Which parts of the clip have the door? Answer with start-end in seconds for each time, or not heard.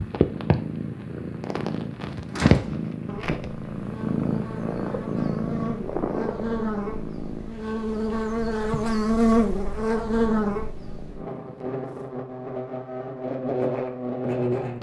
2.3-2.8.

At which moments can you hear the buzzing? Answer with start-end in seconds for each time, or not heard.
3.0-14.7.